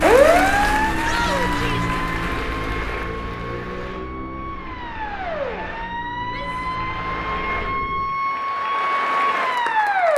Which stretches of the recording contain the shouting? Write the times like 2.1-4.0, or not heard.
1.0-1.9, 6.2-6.8.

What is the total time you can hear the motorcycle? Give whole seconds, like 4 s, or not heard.
8 s.